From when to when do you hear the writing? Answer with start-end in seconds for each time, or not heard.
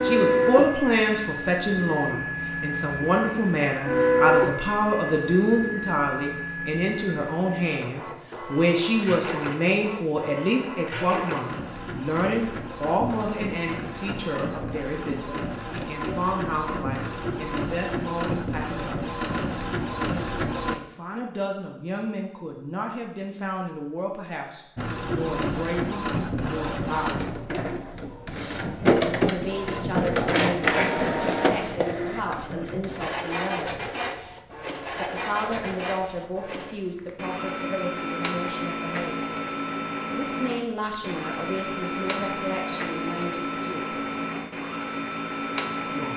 not heard.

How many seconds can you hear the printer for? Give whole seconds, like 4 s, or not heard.
42 s.